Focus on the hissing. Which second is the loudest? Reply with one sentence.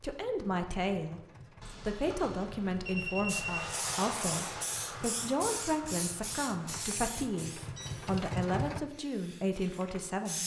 The volume of the hissing peaks at 4 seconds.